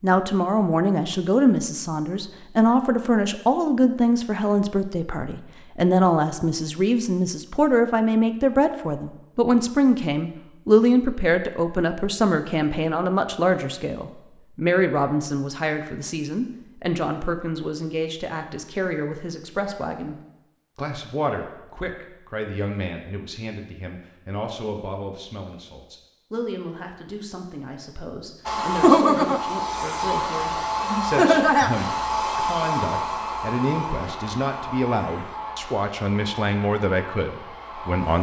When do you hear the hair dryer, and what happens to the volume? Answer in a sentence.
The hair dryer can be heard from 28.4 to 38.1 s, getting quieter.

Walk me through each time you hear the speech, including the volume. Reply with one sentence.
The speech can be heard from 0.0 to 38.1 s, getting quieter then louder.